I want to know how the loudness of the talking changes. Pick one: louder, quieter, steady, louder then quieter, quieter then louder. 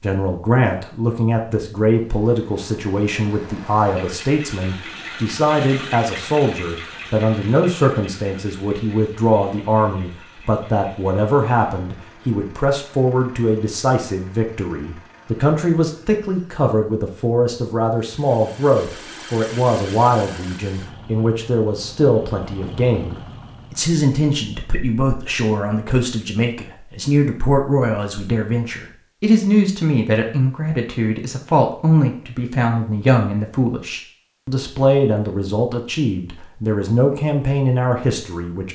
steady.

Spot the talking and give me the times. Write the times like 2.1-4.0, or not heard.
0.0-38.6.